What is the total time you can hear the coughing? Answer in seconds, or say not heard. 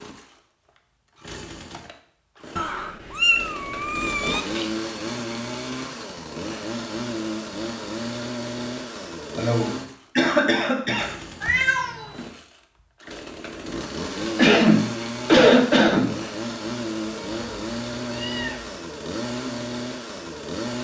4 s.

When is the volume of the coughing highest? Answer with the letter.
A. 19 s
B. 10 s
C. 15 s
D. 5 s
C.